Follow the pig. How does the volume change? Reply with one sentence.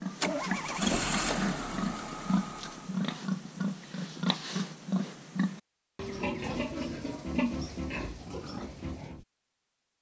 The loudness of the pig stays about the same.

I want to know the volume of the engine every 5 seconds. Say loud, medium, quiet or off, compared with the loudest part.
loud, off.